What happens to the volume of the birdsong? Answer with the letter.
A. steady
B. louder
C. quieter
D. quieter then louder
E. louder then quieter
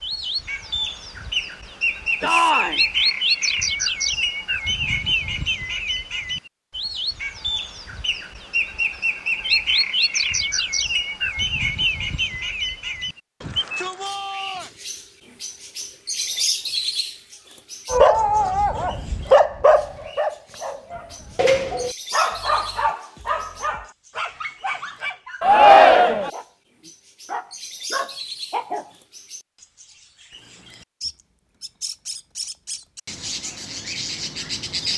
D.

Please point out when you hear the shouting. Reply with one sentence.
You can hear the shouting from 2.2 to 2.8 s, from 13.4 to 14.7 s and from 25.4 to 26.3 s.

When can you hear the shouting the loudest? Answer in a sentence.
The loudest moment of the shouting is at 26 seconds.